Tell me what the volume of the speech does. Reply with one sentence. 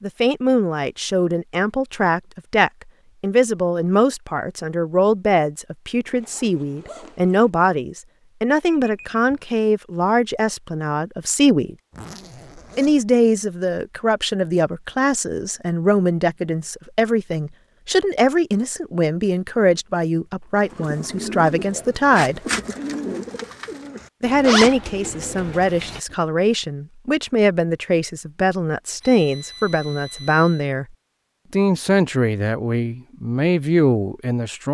The volume of the speech stays about the same.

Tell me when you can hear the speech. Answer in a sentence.
The speech can be heard from 0.0 to 11.8 s, from 12.8 to 22.4 s, from 24.2 to 30.9 s and from 31.5 to 34.6 s.